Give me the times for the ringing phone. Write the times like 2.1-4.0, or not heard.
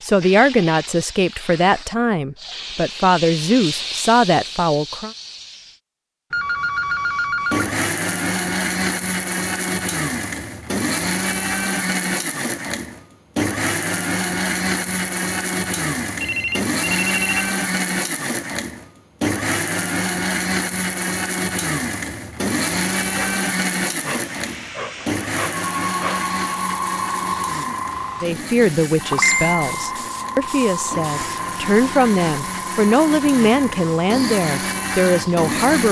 6.3-7.8, 16.1-17.5, 25.6-27.2.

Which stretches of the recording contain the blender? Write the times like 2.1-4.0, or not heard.
7.5-35.8.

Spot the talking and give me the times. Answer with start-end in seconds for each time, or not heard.
0.0-5.1, 28.2-35.8.